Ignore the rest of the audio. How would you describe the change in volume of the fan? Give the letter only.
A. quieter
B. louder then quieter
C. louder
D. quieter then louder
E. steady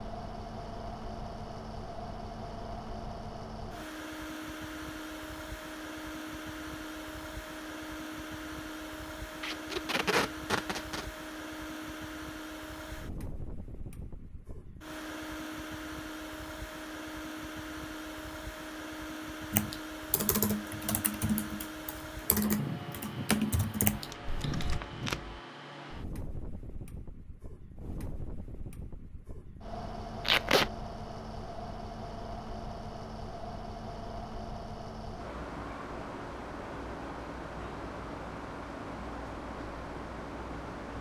E.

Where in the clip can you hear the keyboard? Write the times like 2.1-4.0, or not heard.
19.5-24.8.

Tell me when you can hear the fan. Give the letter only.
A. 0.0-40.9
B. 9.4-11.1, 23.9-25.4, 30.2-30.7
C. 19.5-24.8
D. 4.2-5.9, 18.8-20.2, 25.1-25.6
A.